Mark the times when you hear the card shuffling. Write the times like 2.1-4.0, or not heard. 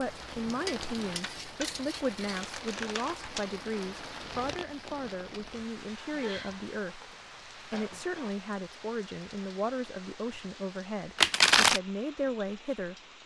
1.2-3.5, 11.2-11.8.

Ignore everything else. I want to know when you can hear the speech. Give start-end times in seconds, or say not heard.
0.0-12.9.